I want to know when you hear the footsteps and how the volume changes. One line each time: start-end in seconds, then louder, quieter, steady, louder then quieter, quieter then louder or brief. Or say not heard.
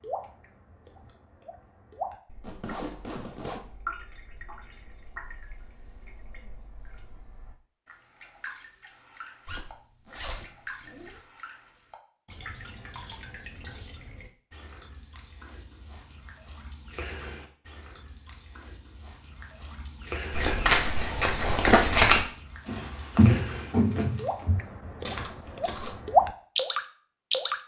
20.3-25.9 louder then quieter.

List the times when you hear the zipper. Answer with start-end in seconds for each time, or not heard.
2.4-3.6, 9.4-11.2, 21.4-21.8.